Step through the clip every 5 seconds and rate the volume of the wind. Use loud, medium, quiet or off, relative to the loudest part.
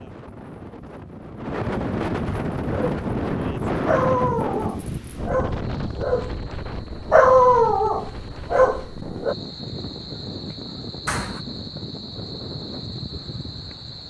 loud, medium, medium.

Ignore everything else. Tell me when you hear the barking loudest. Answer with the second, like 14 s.
7 s.